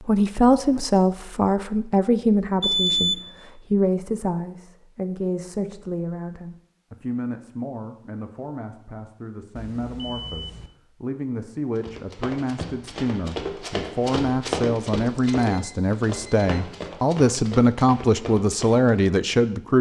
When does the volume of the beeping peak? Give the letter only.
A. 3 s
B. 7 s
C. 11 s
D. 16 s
A.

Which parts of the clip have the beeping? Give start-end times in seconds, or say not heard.
2.6-3.2, 9.6-10.7, 15.1-16.9.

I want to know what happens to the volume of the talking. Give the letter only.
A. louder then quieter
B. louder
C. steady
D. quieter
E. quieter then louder
E.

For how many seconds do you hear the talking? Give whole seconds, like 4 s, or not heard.
20 s.